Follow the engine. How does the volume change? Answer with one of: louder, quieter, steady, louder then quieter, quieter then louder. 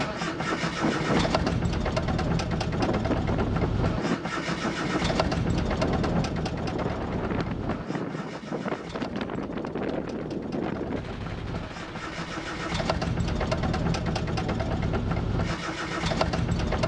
quieter then louder.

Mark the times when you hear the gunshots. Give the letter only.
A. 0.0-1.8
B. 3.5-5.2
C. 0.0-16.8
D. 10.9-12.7
D.